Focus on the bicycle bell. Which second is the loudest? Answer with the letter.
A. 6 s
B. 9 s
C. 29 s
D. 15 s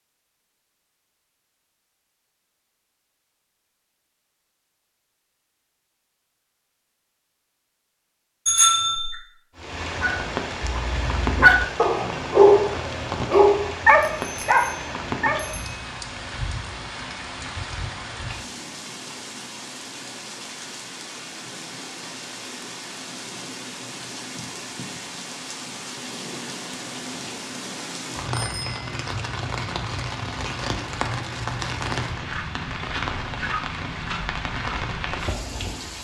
B.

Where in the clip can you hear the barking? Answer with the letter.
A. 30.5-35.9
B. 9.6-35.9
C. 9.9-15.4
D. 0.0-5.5
C.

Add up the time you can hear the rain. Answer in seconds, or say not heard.
26 s.